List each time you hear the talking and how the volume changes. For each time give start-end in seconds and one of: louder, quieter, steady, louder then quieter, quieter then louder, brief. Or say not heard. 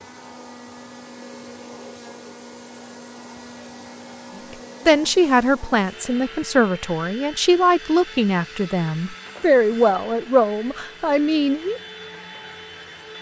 4.8-11.8 steady.